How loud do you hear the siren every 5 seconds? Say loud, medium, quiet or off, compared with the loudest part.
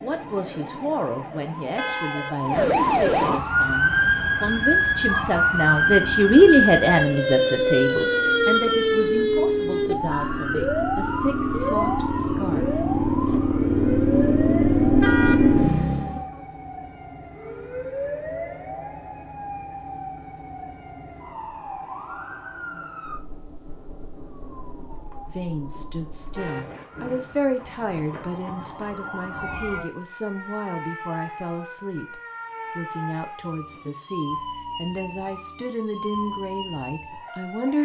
loud, loud, medium, quiet, quiet, quiet, quiet, quiet.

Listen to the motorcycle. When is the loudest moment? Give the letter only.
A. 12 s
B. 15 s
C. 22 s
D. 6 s
B.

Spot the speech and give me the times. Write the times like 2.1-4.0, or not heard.
0.0-13.4, 25.2-37.8.